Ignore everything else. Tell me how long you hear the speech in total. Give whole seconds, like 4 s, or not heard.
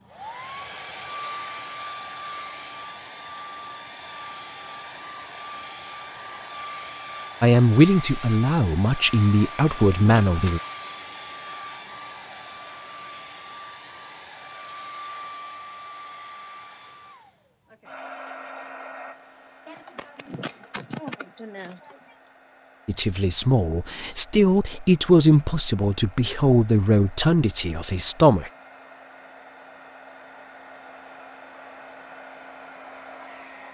9 s.